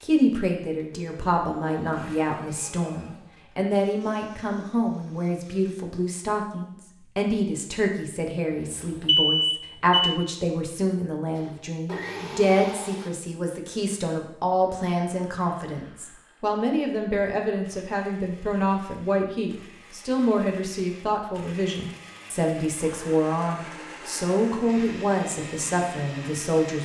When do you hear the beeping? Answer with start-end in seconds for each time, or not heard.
9.0-10.2.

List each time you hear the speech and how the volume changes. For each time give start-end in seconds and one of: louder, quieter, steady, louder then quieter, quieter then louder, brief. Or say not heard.
0.0-26.8 steady.